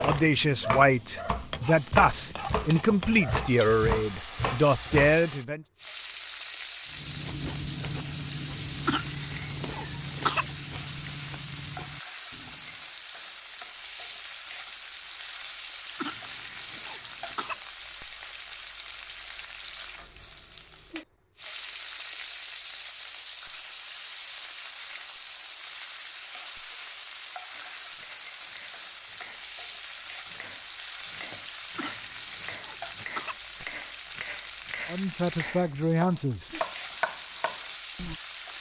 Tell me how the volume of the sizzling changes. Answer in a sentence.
The volume of the sizzling stays about the same.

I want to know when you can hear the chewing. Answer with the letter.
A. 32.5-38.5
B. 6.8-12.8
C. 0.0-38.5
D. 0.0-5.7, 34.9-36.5
B.